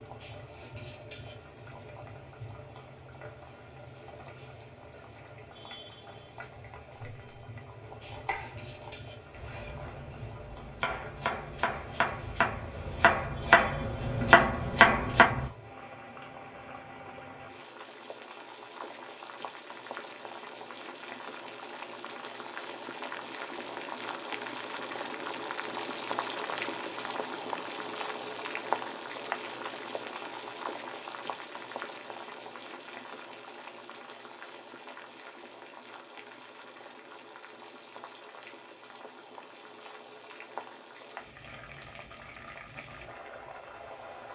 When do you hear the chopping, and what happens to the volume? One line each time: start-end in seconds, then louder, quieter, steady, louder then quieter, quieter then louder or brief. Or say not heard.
7.9-15.5 louder.